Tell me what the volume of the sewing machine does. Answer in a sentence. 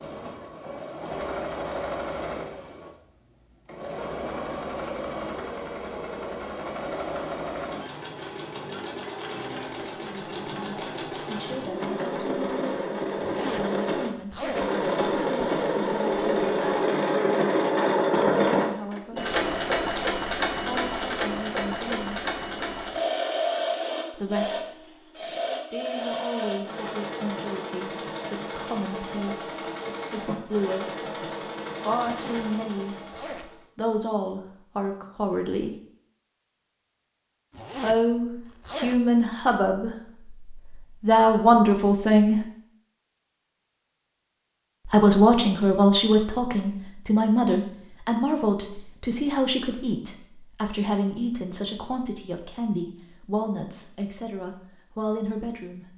The volume of the sewing machine goes up, then down.